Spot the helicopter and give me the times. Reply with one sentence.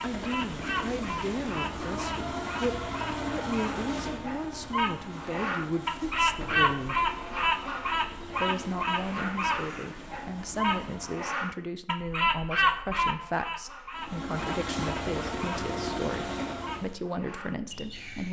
You can hear the helicopter from 0.0 to 11.2 s and from 13.9 to 16.9 s.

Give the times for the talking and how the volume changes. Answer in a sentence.
You can hear the talking from 0.0 to 7.0 s, at a steady volume; and from 8.4 to 18.2 s, at a steady volume.